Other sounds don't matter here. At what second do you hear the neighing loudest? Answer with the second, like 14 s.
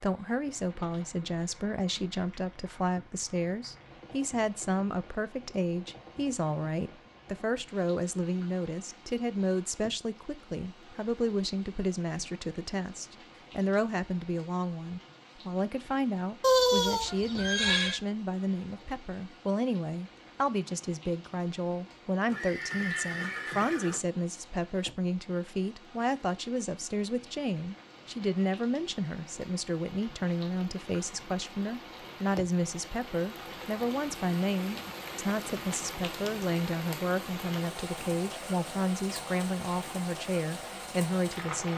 17 s.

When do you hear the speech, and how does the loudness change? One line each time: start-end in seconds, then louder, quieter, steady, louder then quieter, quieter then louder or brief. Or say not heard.
0.0-41.7 steady.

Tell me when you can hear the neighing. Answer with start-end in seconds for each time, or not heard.
16.4-18.0, 22.2-24.0.